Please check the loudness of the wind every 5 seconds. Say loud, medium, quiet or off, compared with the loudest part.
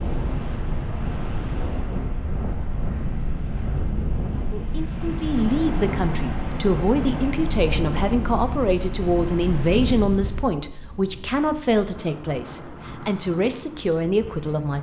loud, loud, medium.